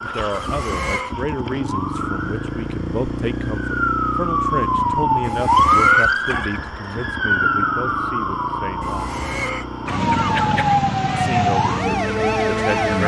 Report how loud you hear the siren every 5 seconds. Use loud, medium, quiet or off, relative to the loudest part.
medium, loud, loud.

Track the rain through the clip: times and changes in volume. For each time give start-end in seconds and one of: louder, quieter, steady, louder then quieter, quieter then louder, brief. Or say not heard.
not heard.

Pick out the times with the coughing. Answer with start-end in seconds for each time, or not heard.
0.3-1.1, 5.2-6.6, 8.8-10.8.